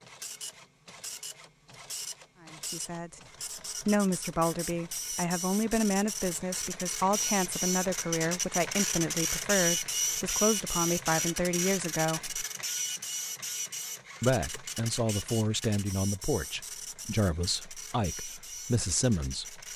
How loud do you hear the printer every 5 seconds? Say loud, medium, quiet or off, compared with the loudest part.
medium, loud, loud, medium.